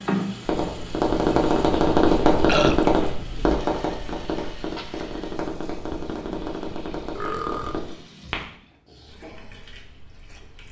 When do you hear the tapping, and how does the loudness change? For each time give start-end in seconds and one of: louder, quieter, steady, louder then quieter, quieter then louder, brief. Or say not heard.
0.5-8.4 quieter.